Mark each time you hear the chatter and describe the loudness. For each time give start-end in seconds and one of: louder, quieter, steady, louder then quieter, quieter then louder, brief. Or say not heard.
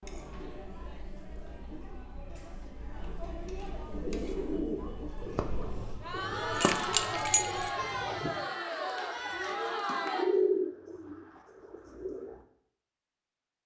0.0-10.2 louder.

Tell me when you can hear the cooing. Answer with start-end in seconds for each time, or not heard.
3.9-12.4.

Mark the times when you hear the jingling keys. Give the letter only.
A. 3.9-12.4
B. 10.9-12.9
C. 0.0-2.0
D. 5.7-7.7
D.